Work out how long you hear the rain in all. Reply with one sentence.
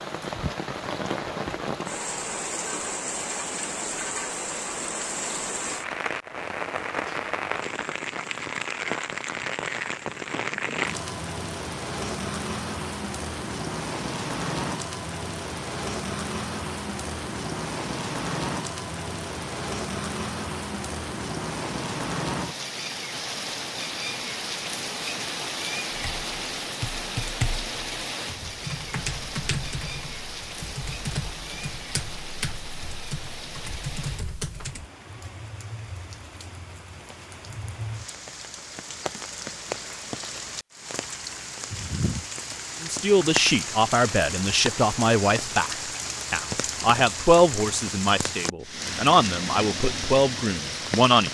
The rain can be heard for 51 seconds in total.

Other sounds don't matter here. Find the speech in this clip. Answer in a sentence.
You can hear the speech from 42.8 to 51.3 s.